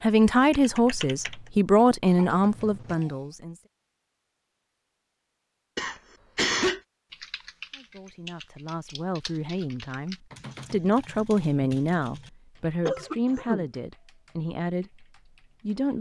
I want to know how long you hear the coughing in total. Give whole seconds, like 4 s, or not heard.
3 s.